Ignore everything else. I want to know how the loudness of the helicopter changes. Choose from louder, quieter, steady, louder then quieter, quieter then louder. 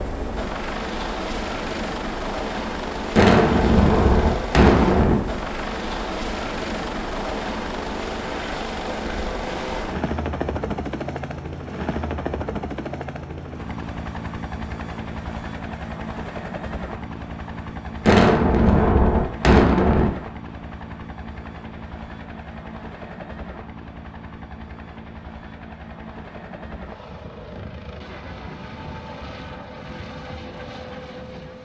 quieter.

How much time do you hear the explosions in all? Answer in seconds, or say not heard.
4 s.